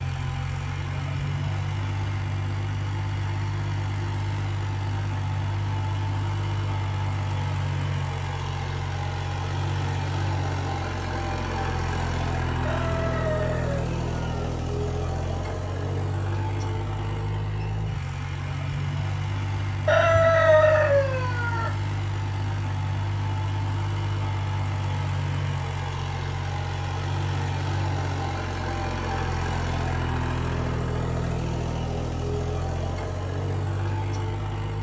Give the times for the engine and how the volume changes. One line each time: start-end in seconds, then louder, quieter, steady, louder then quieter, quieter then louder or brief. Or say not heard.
0.0-34.7 steady.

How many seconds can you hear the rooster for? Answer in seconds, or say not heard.
4 s.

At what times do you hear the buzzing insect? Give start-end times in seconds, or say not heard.
not heard.